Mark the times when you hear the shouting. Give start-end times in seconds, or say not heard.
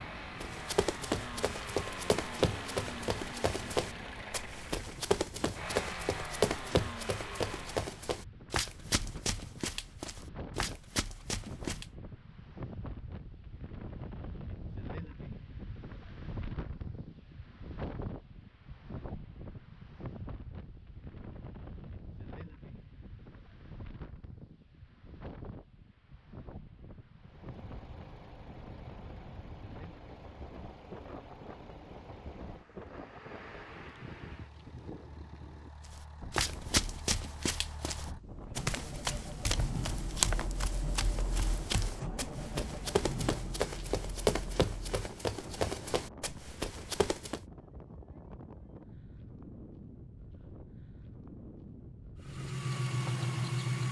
not heard.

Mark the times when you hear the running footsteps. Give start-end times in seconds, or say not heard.
0.4-11.9, 35.9-47.4.